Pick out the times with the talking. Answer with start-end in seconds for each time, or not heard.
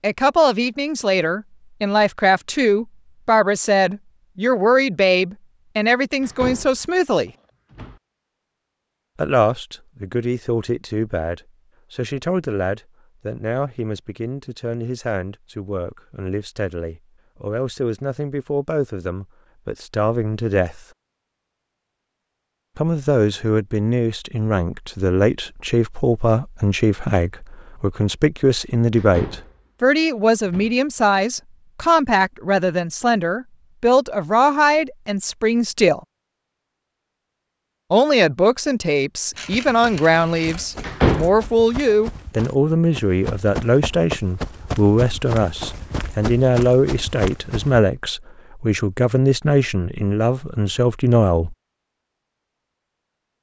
0.0-7.3, 9.2-20.9, 22.8-36.0, 37.9-51.5.